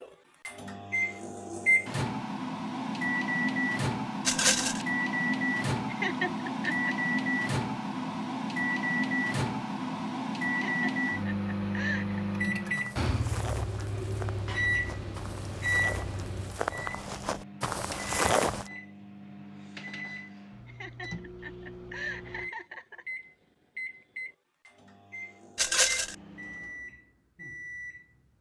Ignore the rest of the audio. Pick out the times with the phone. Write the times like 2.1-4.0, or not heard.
not heard.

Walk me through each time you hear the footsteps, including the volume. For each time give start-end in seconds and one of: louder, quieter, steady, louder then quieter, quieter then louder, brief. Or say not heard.
12.8-18.7 louder.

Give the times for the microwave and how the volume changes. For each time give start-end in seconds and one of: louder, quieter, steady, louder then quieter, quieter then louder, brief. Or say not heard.
0.0-28.3 quieter.